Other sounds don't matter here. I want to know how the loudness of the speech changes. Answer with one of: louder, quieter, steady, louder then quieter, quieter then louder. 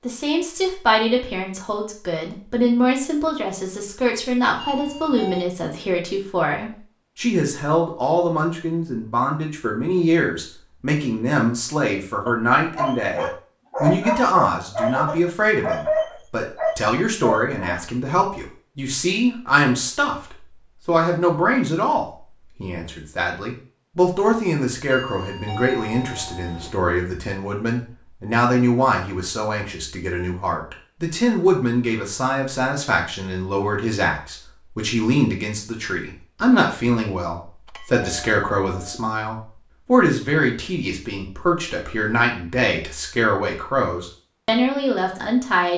steady.